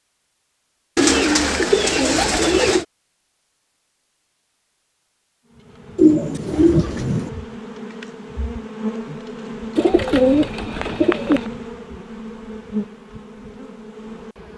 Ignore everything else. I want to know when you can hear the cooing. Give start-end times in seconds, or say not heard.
0.9-2.9, 6.0-7.3, 9.8-11.5.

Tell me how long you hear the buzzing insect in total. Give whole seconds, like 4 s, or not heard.
9 s.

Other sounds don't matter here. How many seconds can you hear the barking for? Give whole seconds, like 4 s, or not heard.
not heard.